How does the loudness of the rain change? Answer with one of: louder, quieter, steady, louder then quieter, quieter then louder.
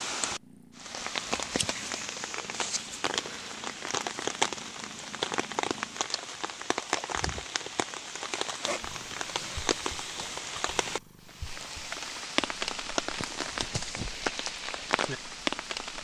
steady.